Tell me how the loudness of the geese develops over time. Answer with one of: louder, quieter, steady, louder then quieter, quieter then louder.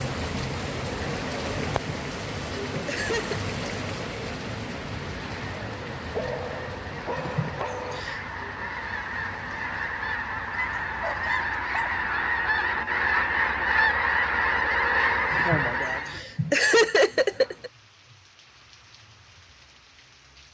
louder.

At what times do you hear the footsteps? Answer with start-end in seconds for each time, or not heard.
not heard.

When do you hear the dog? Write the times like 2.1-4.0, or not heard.
6.1-8.1, 10.5-11.9.